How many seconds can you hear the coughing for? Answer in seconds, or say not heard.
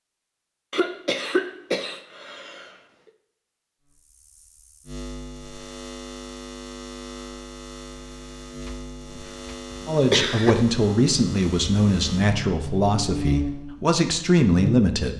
4 s.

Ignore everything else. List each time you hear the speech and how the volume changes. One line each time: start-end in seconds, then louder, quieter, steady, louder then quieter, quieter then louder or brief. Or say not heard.
9.8-15.1 quieter then louder.